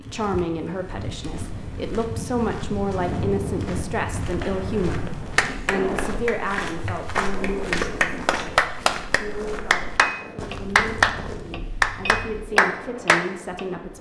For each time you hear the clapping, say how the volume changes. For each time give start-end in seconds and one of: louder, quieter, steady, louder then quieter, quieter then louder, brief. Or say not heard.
4.4-13.7 louder.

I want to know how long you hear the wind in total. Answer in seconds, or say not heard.
14 s.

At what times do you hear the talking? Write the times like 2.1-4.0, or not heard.
0.0-13.9.